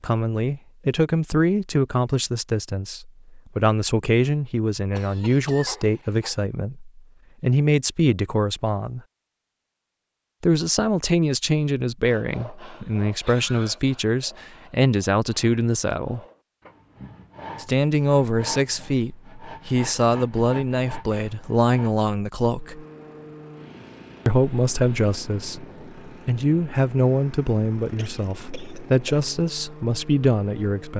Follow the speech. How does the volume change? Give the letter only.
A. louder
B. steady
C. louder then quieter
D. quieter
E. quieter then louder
B.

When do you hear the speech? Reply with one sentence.
The speech can be heard from 0.0 to 9.0 s, from 10.4 to 16.2 s, from 17.6 to 22.9 s and from 24.2 to 30.9 s.